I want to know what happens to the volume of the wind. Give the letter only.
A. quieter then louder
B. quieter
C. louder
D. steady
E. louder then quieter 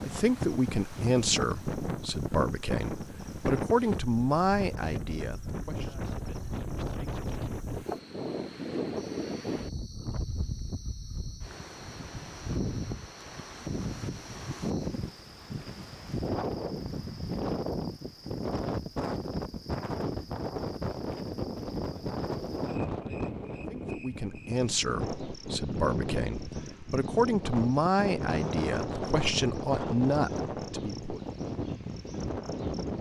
D.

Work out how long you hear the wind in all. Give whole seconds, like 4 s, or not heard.
33 s.